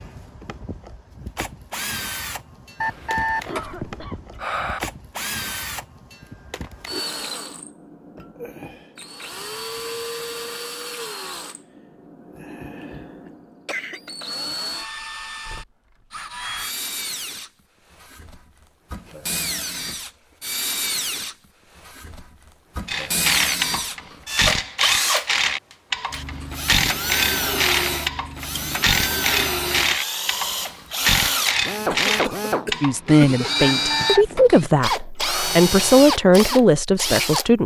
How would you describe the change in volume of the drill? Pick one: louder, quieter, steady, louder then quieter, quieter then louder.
louder.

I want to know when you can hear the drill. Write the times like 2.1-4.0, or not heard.
0.0-37.5.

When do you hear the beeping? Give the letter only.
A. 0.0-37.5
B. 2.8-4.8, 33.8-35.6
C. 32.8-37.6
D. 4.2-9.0
B.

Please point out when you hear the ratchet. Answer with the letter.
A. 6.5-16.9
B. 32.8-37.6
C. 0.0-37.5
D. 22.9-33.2
D.